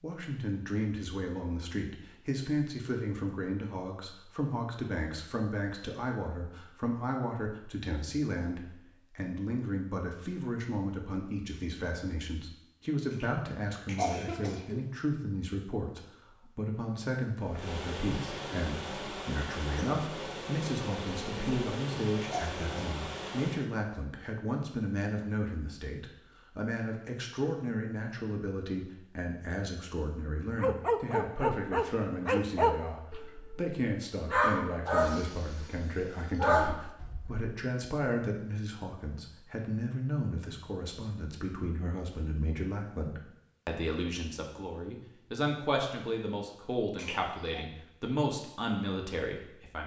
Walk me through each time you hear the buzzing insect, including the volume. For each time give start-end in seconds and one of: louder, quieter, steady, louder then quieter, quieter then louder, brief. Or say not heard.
17.4-23.6 steady.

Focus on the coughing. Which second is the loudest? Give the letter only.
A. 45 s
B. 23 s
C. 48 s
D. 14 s
D.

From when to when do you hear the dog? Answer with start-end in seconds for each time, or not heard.
30.6-37.5.